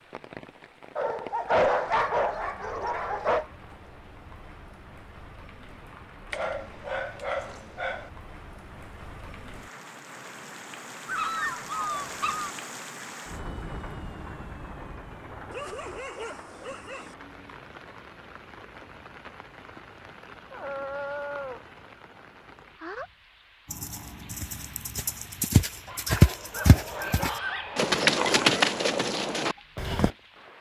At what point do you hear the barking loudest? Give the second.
2 s.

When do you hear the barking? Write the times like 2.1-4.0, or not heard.
0.9-3.5, 6.3-8.1, 11.1-12.6, 15.5-17.1, 20.5-21.6, 25.9-28.6.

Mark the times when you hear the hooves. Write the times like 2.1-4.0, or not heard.
23.7-30.1.